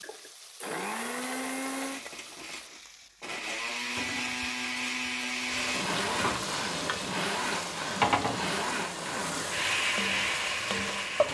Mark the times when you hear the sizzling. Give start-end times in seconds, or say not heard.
0.0-11.3.